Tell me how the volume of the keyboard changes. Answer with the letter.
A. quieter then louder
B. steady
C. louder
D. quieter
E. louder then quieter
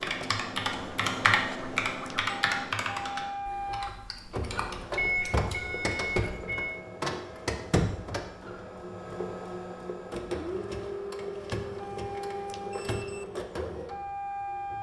D.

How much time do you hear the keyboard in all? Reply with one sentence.
You can hear the keyboard for 6 seconds altogether.